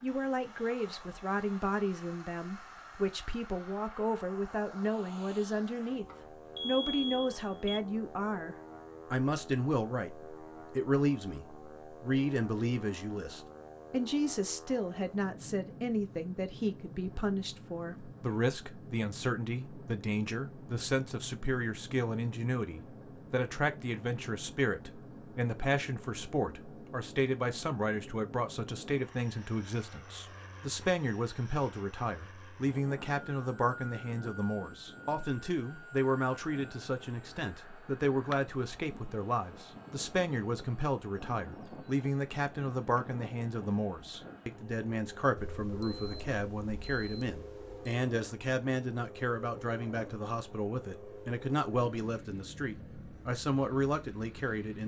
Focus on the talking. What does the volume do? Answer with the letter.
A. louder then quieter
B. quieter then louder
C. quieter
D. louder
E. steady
E.